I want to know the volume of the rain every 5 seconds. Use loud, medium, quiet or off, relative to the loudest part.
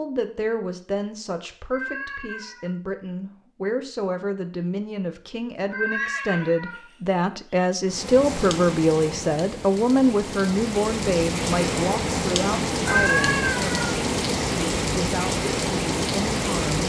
off, medium, loud, loud.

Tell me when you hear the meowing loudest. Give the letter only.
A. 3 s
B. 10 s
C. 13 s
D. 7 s
C.